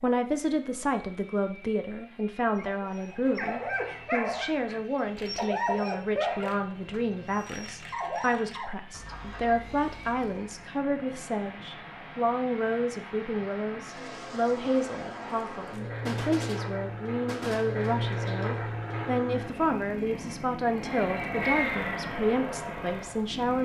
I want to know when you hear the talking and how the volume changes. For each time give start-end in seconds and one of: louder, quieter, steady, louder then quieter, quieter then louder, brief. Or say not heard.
0.0-23.5 steady.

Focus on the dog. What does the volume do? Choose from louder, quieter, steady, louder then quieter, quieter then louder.
quieter.